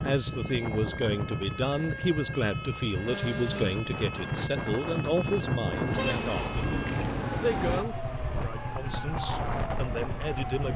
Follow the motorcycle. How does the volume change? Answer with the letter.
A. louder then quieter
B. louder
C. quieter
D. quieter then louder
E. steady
E.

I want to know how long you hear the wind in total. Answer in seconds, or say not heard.
11 s.